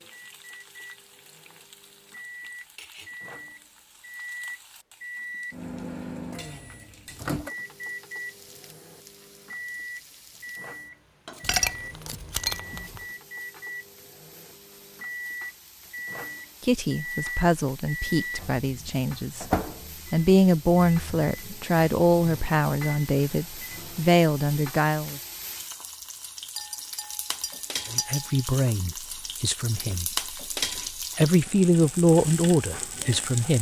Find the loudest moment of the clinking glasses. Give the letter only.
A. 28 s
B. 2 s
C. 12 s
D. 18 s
C.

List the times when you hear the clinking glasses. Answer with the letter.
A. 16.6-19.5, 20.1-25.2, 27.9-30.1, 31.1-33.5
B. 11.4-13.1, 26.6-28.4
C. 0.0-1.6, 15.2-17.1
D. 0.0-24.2
B.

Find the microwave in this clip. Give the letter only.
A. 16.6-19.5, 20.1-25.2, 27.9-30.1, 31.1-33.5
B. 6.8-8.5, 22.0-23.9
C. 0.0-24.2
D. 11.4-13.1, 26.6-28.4
C.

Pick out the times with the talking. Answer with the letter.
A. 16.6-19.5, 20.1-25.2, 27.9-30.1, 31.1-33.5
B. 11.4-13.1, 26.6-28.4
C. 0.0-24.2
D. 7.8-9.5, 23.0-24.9
A.